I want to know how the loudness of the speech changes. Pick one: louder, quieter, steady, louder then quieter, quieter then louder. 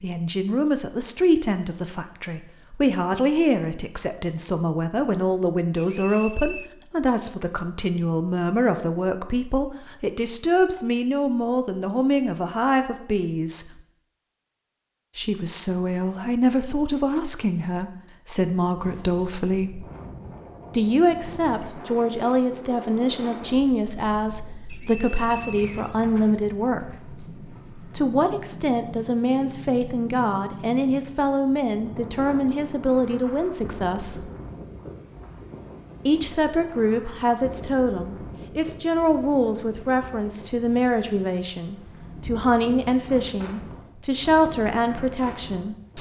steady.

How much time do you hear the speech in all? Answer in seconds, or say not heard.
42 s.